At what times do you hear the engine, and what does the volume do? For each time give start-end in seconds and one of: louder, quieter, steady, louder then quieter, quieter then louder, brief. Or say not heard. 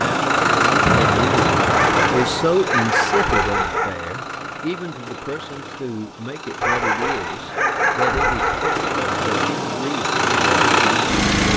0.0-11.5 quieter then louder.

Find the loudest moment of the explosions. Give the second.
1 s.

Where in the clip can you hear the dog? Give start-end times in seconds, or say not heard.
1.7-4.0, 6.6-8.9.